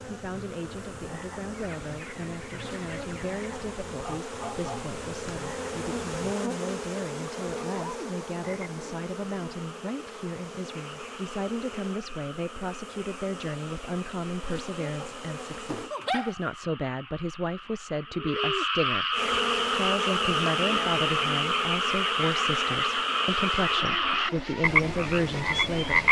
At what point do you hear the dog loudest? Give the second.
16 s.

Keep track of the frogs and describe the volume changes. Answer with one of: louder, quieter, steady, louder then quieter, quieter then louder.
louder.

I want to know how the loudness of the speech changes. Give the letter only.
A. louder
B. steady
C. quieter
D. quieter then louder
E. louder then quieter
A.